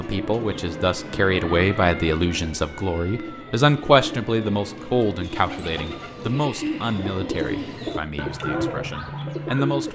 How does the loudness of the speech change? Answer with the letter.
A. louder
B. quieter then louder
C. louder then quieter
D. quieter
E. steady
D.